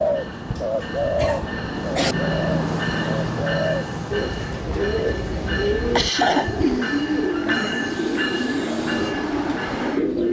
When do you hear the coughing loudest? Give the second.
6 s.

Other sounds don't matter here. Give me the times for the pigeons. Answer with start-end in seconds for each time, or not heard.
0.0-10.2.